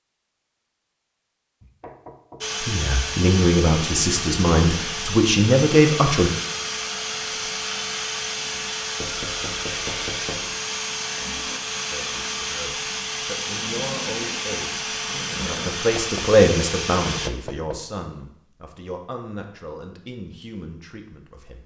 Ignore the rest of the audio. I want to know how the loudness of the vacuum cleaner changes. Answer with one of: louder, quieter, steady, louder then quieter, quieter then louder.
steady.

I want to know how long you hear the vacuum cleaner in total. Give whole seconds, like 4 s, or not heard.
15 s.